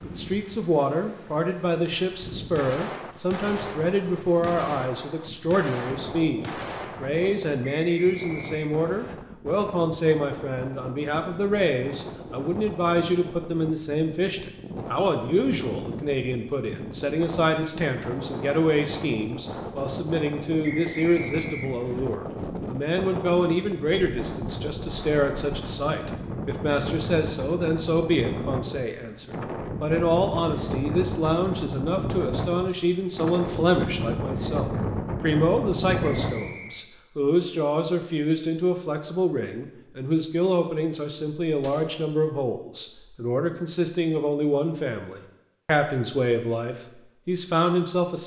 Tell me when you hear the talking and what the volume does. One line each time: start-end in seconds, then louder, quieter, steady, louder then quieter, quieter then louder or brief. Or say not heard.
0.0-48.2 steady.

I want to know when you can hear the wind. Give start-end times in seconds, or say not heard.
0.0-36.5.